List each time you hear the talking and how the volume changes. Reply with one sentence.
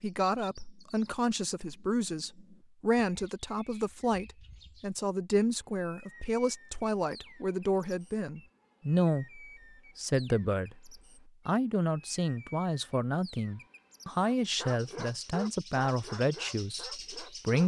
You can hear the talking from 0.0 to 17.6 s, at a steady volume.